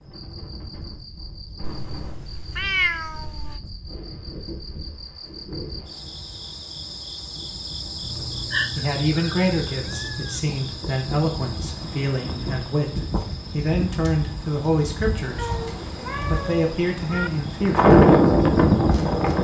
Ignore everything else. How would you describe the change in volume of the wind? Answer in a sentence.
The loudness of the wind goes up.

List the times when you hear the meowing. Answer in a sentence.
You can hear the meowing from 1.6 to 3.6 s, from 8.0 to 10.5 s and from 15.3 to 17.3 s.